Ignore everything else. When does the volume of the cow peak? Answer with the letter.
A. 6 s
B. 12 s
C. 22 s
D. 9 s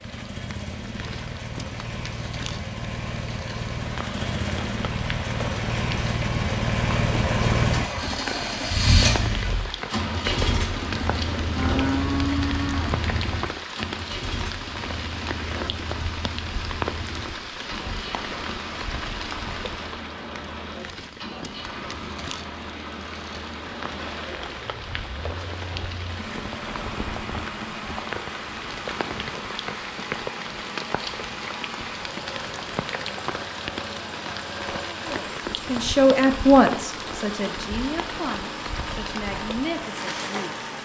B.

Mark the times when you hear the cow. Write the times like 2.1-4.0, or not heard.
11.6-13.3.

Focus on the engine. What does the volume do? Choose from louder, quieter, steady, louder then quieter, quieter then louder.
quieter.